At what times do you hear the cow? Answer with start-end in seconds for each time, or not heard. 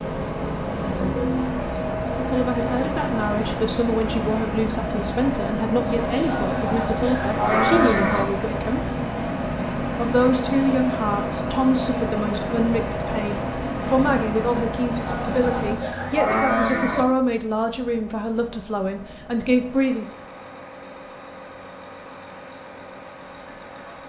6.2-8.2, 15.0-17.1.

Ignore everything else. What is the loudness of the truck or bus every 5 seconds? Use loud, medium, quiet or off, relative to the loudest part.
loud, loud, loud, medium, quiet.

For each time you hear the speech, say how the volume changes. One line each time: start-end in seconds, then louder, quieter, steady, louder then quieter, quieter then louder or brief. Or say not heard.
2.1-8.9 steady
9.9-20.1 steady.